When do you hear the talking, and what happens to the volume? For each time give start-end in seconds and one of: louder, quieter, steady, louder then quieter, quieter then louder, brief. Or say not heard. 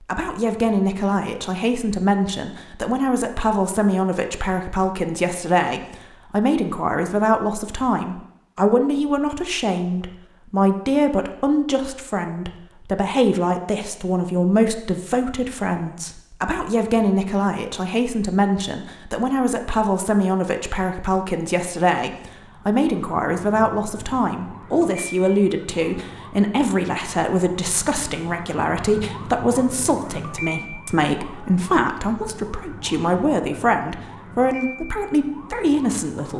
0.0-36.3 steady.